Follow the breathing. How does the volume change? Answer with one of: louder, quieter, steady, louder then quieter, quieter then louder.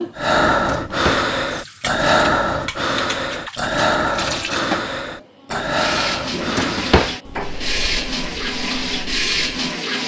quieter.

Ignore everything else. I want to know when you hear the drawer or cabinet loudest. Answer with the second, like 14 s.
7 s.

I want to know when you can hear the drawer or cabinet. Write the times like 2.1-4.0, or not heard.
0.6-1.3, 6.3-7.2.